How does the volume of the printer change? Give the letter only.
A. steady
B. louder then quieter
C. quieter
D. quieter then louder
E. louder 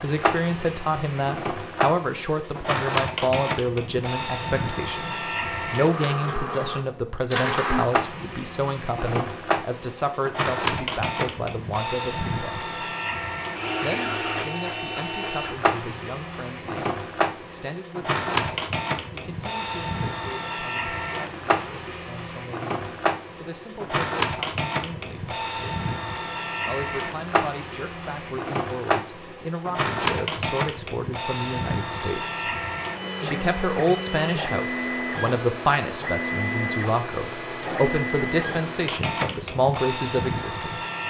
A.